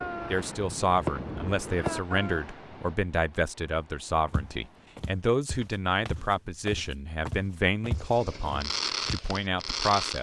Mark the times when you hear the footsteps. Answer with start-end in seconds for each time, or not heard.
4.2-9.2.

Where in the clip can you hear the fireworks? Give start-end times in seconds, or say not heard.
0.0-2.6, 7.9-10.1.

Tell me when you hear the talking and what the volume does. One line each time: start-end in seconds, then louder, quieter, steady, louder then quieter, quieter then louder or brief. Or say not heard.
0.3-10.1 steady.